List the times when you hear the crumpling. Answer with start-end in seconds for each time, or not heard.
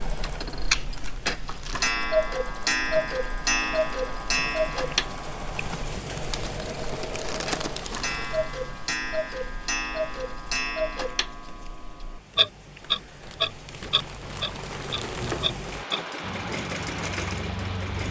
0.7-1.9, 6.0-8.1, 12.8-15.5.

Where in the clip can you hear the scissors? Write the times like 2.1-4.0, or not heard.
not heard.